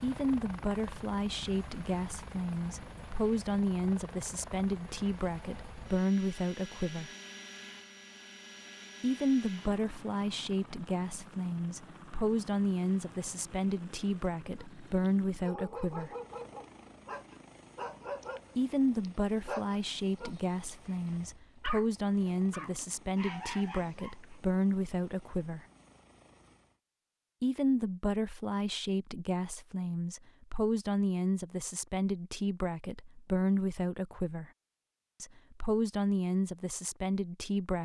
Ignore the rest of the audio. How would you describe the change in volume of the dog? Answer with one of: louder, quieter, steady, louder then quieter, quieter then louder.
steady.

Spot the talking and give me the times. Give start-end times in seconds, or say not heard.
0.0-7.1, 9.0-16.1, 18.6-25.6, 27.4-34.5, 35.2-37.7.